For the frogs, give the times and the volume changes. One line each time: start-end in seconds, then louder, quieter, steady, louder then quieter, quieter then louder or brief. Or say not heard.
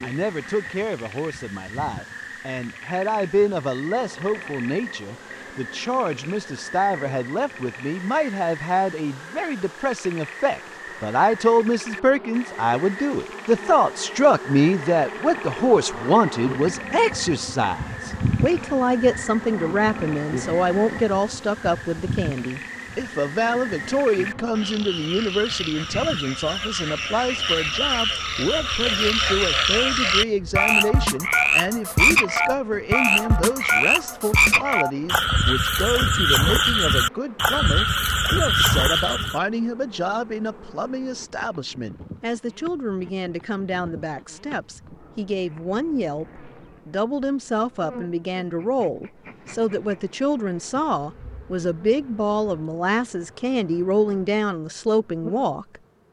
0.0-39.4 louder.